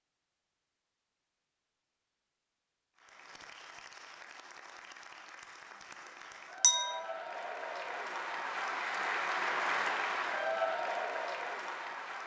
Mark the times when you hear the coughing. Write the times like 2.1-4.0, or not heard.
not heard.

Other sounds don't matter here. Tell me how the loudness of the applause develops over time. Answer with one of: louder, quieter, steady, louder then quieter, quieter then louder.
louder.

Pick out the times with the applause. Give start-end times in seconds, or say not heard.
3.0-12.2.